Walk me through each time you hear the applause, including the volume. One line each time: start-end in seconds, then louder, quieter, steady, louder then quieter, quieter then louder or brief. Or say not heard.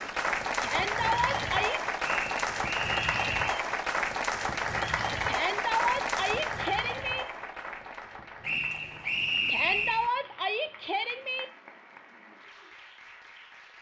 0.0-13.7 quieter.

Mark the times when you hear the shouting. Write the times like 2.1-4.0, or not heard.
0.6-1.8, 5.2-7.2, 9.4-11.4.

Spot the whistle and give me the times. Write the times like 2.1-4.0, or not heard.
2.0-3.5, 8.4-10.1.